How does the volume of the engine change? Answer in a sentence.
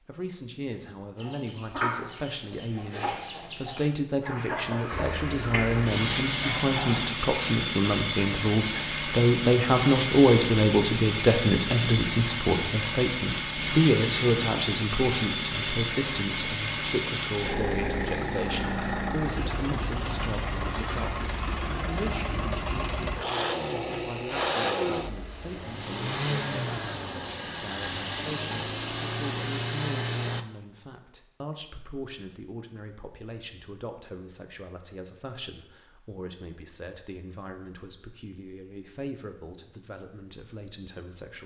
The volume of the engine stays about the same.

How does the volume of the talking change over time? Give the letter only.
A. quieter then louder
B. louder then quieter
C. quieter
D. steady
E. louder
B.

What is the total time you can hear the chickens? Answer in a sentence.
You can hear the chickens for 6 seconds altogether.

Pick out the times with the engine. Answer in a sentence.
The engine can be heard from 4.9 to 30.4 s.